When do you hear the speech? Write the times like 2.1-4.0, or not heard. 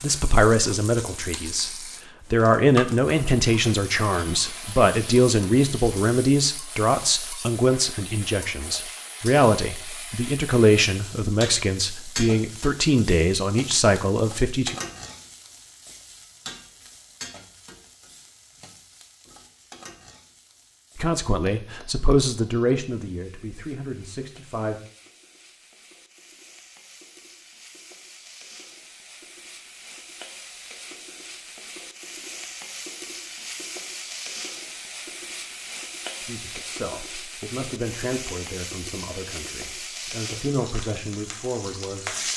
0.0-14.8, 20.9-24.8, 36.2-42.3.